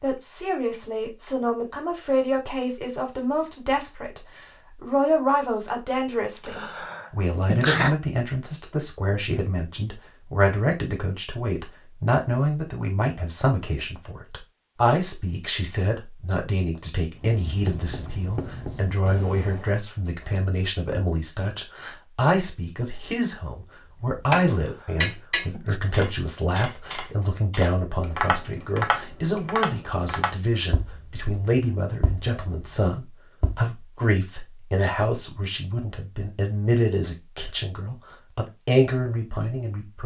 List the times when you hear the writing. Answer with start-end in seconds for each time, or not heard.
17.1-19.8.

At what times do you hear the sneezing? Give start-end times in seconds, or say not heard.
6.3-8.0, 24.6-25.8.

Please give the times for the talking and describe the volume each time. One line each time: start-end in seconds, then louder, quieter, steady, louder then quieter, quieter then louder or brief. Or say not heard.
0.0-40.0 steady.